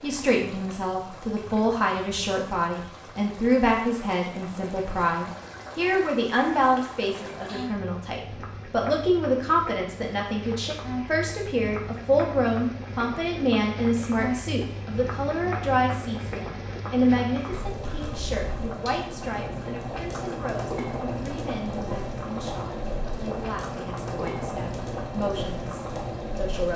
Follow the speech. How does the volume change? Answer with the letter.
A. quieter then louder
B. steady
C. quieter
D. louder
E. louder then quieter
C.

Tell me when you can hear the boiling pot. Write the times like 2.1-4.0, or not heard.
0.0-26.7.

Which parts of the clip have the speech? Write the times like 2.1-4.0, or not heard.
0.0-26.7.